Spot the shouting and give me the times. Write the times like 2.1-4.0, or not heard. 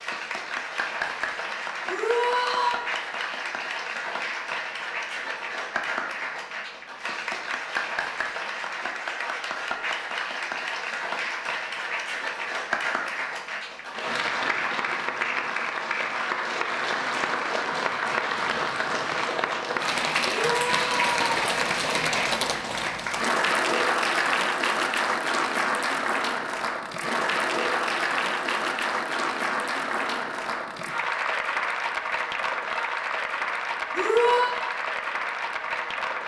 1.9-2.8, 20.2-21.6, 33.9-34.5.